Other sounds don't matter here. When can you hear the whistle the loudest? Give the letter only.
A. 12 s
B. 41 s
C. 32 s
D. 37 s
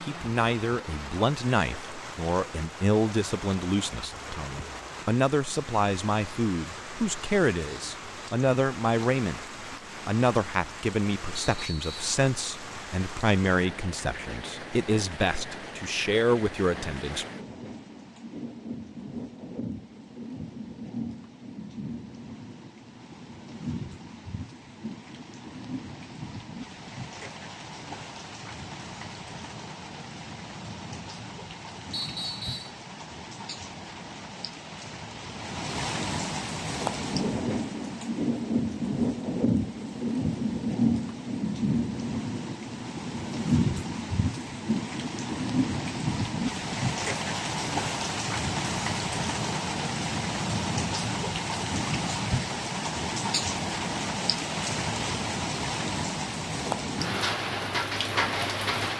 C.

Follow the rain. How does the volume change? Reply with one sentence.
The loudness of the rain goes up.